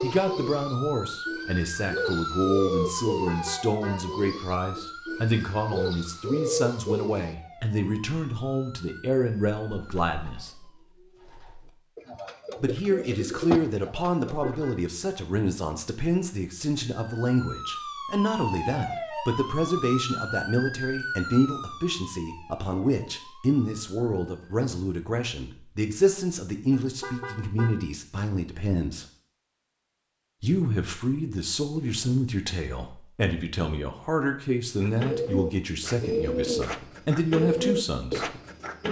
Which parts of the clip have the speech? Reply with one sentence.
You can hear the speech from 0.0 to 10.5 s, from 12.6 to 29.1 s and from 30.4 to 38.2 s.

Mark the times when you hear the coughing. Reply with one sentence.
The coughing can't be heard in this clip.